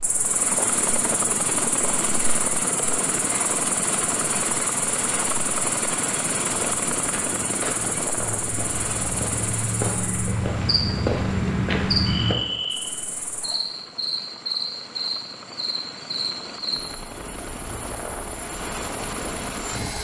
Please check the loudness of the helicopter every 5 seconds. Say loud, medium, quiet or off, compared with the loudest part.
loud, loud, quiet, medium.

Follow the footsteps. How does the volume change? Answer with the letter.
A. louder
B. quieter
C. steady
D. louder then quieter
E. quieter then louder
A.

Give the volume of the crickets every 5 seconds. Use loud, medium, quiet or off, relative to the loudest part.
loud, medium, loud, medium.